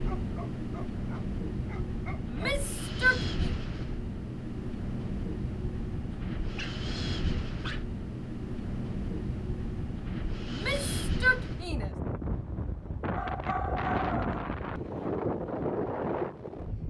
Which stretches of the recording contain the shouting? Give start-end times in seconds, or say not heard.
2.2-3.5, 10.5-11.9.